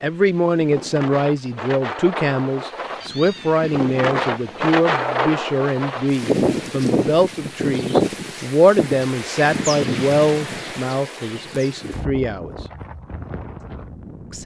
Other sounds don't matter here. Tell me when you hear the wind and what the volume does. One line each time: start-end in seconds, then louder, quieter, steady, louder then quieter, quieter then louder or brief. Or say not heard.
0.0-14.4 louder then quieter.